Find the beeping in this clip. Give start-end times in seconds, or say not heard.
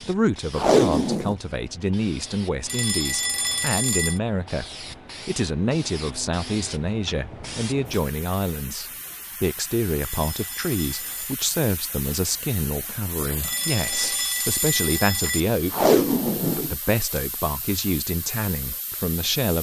2.6-4.2, 10.0-11.3, 13.4-15.4.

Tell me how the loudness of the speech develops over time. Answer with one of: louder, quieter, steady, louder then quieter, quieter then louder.
steady.